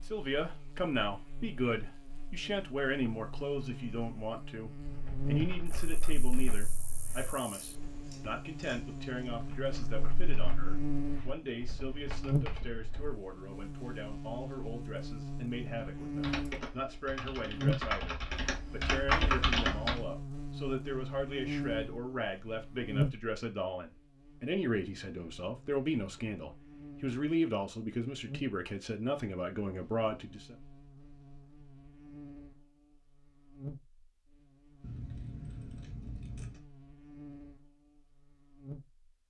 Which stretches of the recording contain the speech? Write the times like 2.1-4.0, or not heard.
0.0-30.6.